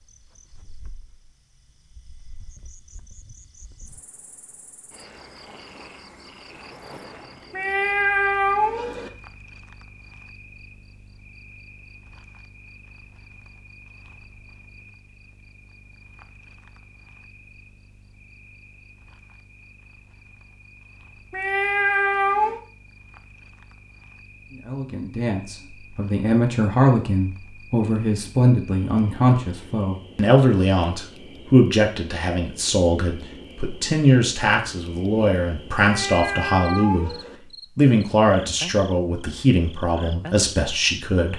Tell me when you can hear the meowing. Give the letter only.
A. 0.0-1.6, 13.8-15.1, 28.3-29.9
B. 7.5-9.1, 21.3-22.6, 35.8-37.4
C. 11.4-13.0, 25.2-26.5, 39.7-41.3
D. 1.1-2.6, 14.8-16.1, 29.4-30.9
B.